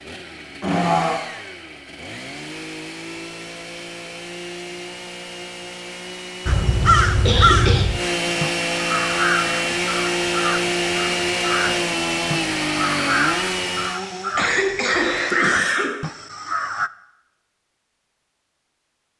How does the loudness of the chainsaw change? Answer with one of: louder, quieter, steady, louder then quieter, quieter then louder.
louder.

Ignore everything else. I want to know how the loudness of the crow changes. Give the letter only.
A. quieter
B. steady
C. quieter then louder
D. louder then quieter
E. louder
A.